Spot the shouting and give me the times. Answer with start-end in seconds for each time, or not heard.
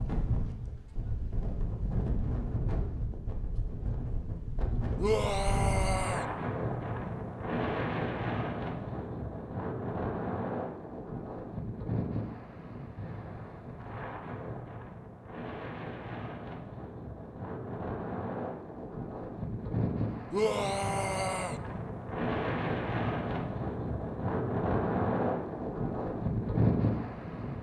5.0-6.2, 20.3-21.6.